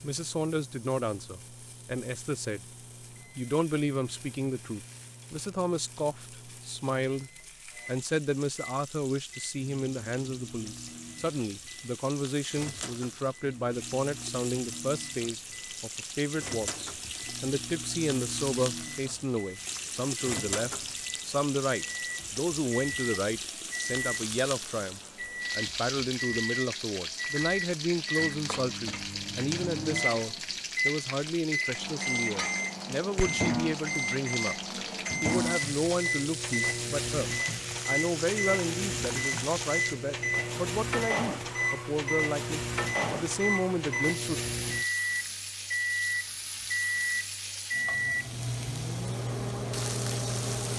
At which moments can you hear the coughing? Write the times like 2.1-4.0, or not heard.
not heard.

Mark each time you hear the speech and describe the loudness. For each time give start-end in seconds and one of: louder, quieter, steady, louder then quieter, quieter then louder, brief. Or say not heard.
0.0-2.6 brief
3.4-34.5 steady
35.2-44.4 steady.